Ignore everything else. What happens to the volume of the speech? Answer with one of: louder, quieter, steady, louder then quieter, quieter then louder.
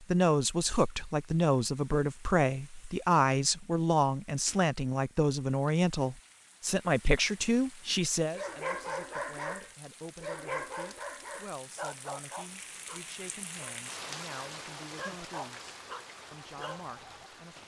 quieter.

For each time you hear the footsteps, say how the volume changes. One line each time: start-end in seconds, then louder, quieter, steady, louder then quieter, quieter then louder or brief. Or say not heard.
not heard.